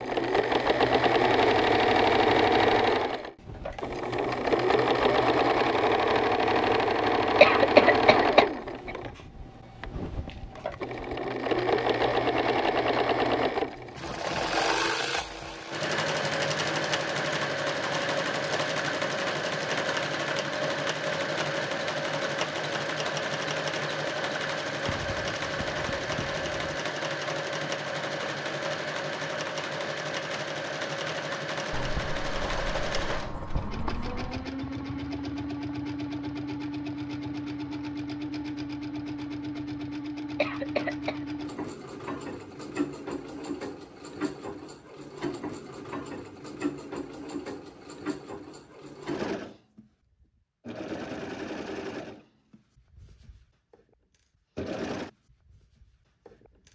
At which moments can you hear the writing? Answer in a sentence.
You can hear the writing from 24.9 to 26.6 s and from 31.7 to 34.4 s.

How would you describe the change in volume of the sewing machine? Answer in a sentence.
The loudness of the sewing machine goes down.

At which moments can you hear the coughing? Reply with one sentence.
The coughing can be heard from 7.4 to 8.9 s and from 40.4 to 41.2 s.